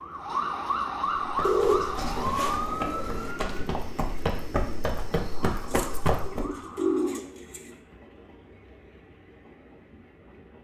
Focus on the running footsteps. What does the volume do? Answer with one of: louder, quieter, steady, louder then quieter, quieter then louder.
louder.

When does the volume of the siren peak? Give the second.
1 s.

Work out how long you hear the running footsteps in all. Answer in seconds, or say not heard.
5 s.